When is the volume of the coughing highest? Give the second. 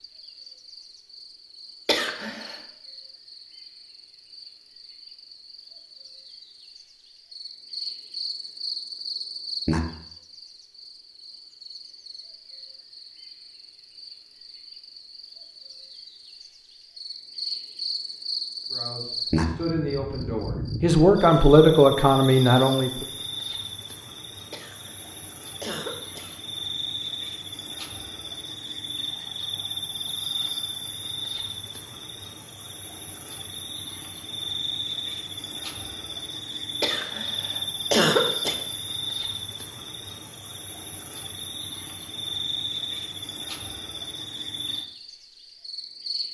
38 s.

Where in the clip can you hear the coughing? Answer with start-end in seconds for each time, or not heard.
1.9-2.5, 24.5-26.4, 36.8-38.5.